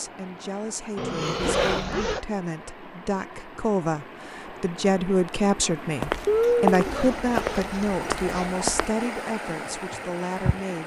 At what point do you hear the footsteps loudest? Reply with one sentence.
The loudest moment of the footsteps is at 7 seconds.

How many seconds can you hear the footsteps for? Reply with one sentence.
You can hear the footsteps for 4 seconds altogether.